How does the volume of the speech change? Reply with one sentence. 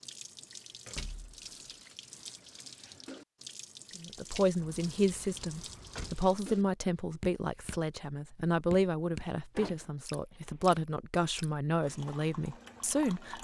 The loudness of the speech stays about the same.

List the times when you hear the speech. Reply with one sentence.
The speech can be heard from 4.0 to 13.3 s.